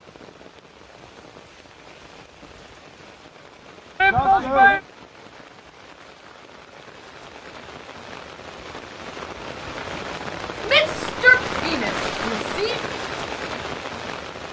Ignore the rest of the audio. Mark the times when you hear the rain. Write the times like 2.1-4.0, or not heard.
0.0-14.4.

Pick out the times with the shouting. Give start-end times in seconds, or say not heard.
4.0-4.8, 10.7-12.8.